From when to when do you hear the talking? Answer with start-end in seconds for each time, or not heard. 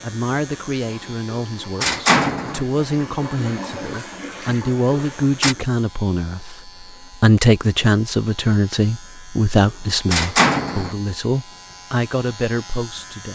0.0-13.2.